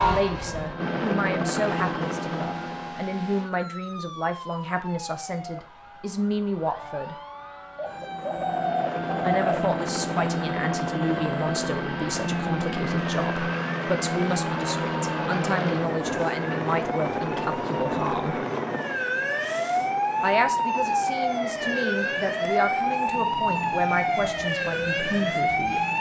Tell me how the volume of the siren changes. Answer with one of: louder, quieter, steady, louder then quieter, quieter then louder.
louder.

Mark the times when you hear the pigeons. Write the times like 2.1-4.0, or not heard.
7.8-9.5.